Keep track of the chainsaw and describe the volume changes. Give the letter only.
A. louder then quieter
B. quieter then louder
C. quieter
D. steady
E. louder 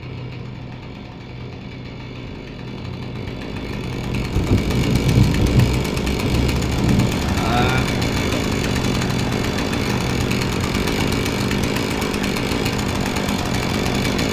E.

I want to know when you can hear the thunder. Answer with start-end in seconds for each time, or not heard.
4.3-7.8.